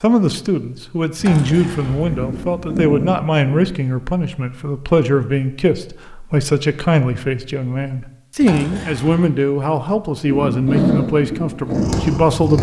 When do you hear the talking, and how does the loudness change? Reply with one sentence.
You can hear the talking from 0.0 to 12.5 s, at a steady volume.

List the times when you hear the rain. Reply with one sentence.
You can't hear the rain here.